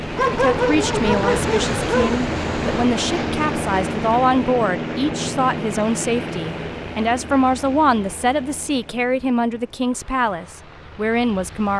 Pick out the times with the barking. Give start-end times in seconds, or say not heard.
0.1-2.1.